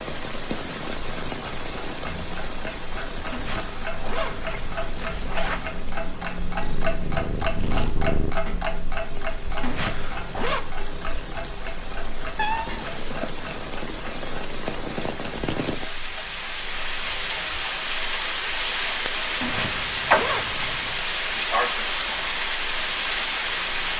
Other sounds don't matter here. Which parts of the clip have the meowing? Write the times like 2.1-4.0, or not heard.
6.6-8.3, 12.3-13.2.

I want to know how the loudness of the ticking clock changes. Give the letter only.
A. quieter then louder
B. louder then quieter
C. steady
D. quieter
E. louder
B.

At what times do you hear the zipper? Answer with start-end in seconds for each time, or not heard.
3.3-5.7, 9.6-10.7, 19.4-21.1.